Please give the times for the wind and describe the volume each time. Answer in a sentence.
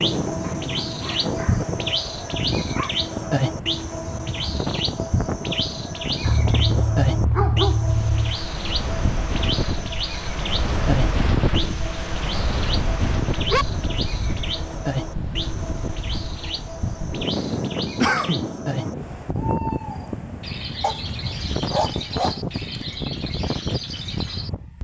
You can hear the wind from 0.0 to 24.7 s, at a steady volume.